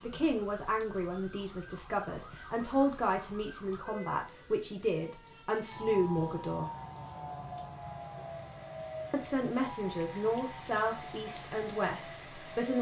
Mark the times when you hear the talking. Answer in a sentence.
You can hear the talking from 0.0 to 6.7 s and from 9.1 to 12.7 s.